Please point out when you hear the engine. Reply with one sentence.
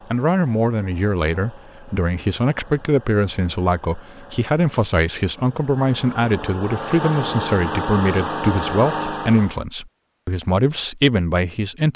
You can hear the engine from 0.0 to 9.7 s.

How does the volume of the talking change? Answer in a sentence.
The volume of the talking stays about the same.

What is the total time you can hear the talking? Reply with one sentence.
You can hear the talking for 12 seconds altogether.